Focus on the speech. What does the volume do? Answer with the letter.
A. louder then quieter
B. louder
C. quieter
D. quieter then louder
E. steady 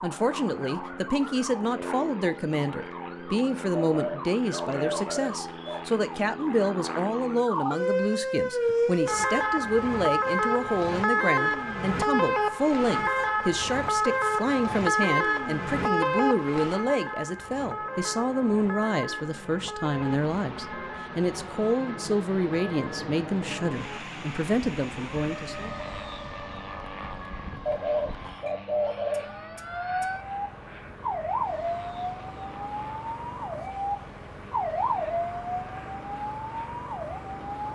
E.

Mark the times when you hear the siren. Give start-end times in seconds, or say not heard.
0.0-37.7.